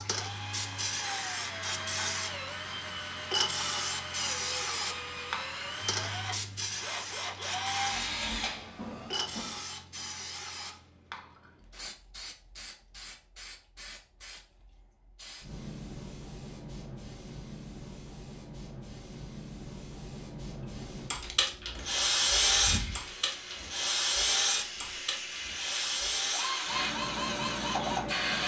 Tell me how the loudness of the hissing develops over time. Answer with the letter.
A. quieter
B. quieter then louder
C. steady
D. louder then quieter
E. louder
B.